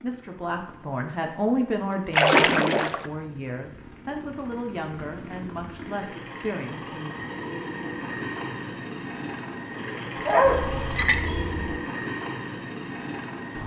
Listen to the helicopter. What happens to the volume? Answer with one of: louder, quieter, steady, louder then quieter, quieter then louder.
louder.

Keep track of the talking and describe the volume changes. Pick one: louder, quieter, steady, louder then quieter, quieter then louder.
quieter.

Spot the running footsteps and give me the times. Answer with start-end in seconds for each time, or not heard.
not heard.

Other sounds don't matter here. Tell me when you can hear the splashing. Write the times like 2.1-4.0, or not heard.
2.1-3.1, 10.7-11.8.